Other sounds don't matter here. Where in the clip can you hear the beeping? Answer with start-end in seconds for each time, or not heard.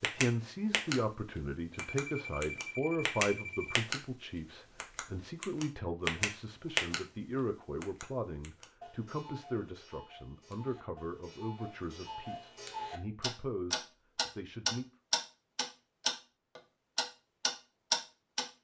1.9-3.8.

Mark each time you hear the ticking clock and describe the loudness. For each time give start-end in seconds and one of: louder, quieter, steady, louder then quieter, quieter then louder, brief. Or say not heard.
0.0-0.9 brief
1.8-4.0 brief
4.8-7.0 brief
7.8-18.4 louder.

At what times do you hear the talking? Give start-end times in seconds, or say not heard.
0.0-14.8.